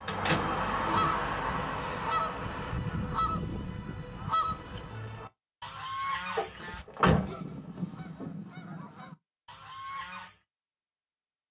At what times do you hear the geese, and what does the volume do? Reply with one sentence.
The geese can be heard from 0.0 to 10.4 s, getting quieter.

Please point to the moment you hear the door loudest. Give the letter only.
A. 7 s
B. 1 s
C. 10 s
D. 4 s
A.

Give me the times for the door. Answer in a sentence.
You can hear the door from 0.1 to 1.1 s and from 6.3 to 8.3 s.